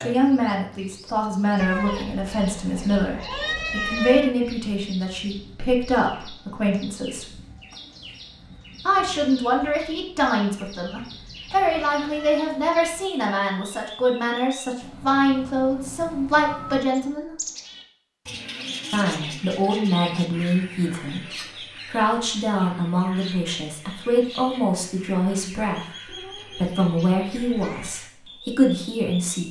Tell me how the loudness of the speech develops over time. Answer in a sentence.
The loudness of the speech stays about the same.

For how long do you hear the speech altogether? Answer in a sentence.
You can hear the speech for 26 seconds altogether.